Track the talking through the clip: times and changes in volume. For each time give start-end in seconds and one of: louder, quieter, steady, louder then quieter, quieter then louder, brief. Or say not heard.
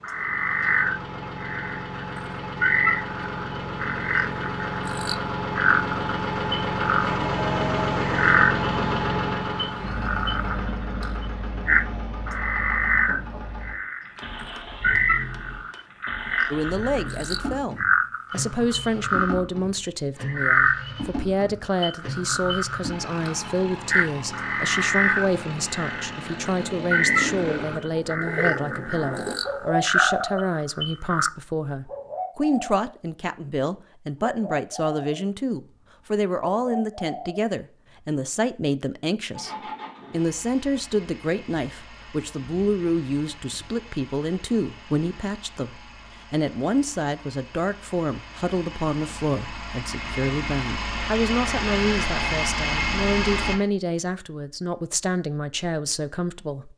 16.5-56.7 steady.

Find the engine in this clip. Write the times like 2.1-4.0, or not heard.
0.0-27.8, 39.3-53.5.